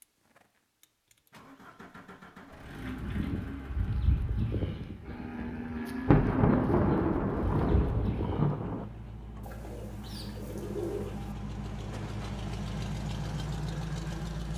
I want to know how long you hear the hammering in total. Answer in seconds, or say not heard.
not heard.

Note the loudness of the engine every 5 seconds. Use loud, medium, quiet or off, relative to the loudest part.
medium, medium, loud.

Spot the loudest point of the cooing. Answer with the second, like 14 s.
11 s.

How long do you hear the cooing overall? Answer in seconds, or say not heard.
2 s.